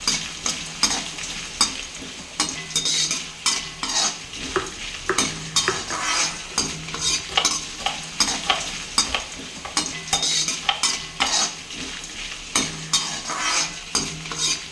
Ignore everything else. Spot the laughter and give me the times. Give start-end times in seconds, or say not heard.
not heard.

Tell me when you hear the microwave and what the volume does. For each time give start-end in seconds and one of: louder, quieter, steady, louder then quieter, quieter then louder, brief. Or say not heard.
not heard.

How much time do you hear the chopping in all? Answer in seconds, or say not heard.
7 s.